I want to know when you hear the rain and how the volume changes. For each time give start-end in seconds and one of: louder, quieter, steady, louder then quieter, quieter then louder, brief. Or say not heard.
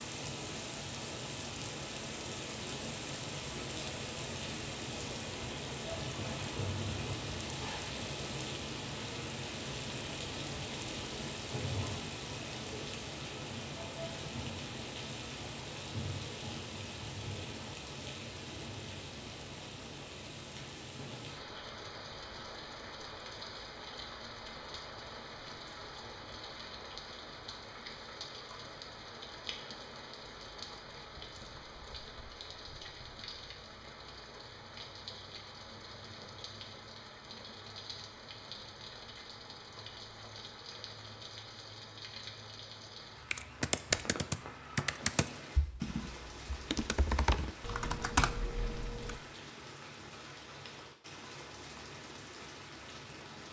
0.0-53.4 quieter.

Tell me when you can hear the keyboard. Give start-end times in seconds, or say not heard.
43.3-49.2.